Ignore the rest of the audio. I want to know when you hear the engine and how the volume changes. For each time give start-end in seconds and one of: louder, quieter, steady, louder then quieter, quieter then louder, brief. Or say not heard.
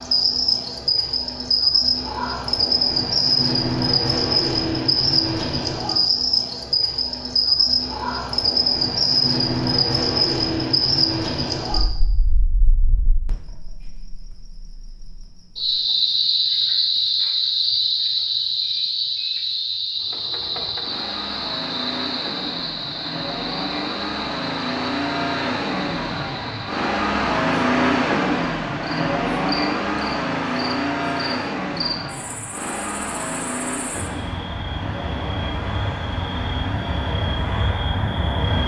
19.9-38.6 louder then quieter.